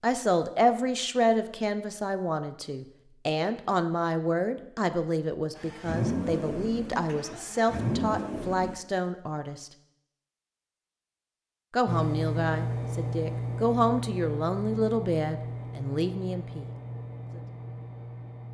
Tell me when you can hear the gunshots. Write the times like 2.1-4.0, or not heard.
not heard.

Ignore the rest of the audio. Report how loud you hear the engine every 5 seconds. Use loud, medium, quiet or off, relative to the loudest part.
off, loud, loud, medium.